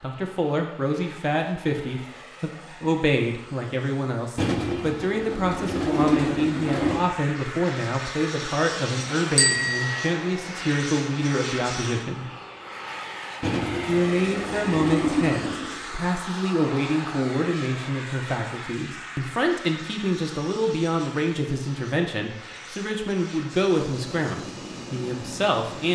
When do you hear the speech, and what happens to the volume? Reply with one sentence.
The speech can be heard from 0.0 to 12.2 s, at a steady volume; and from 13.8 to 25.9 s, at a steady volume.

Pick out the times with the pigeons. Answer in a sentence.
You can hear the pigeons from 4.3 to 7.0 s and from 13.4 to 15.8 s.